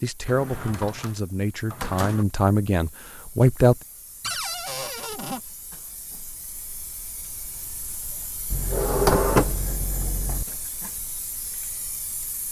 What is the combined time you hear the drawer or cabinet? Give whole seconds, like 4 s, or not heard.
5 s.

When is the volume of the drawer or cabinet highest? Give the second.
9 s.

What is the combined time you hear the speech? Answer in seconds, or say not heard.
4 s.